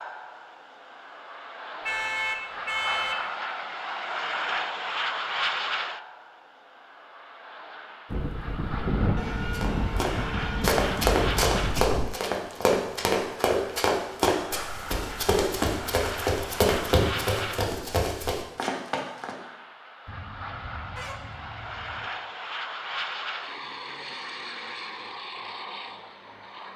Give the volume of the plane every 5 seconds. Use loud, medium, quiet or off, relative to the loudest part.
loud, loud, loud, loud, loud, medium.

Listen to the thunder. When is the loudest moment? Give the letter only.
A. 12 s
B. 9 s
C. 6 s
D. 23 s
B.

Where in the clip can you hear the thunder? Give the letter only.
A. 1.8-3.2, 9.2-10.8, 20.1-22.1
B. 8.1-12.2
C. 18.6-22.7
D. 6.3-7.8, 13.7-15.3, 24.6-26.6
B.